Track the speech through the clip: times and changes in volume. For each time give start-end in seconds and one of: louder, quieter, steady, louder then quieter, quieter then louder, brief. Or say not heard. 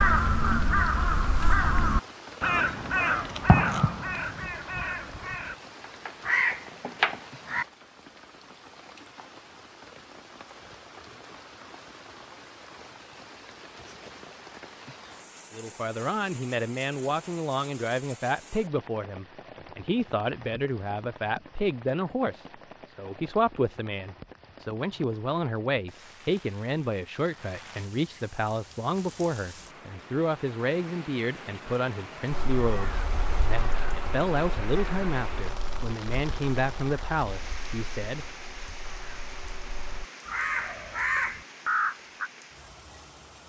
15.5-38.2 steady.